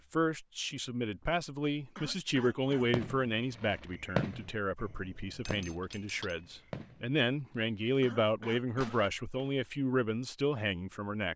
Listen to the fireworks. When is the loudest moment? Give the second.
4 s.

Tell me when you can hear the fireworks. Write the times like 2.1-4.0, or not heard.
2.8-7.0, 8.8-9.5.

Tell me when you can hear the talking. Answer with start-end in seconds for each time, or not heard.
0.1-11.3.